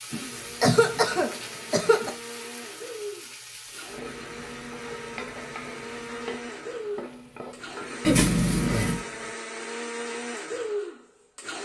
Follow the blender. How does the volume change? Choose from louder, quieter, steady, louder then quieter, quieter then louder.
louder.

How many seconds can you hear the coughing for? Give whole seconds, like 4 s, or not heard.
3 s.